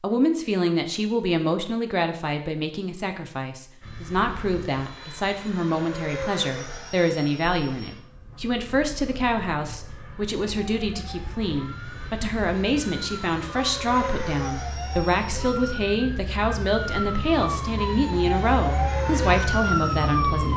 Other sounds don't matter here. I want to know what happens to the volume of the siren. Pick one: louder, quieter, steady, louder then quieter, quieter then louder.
louder.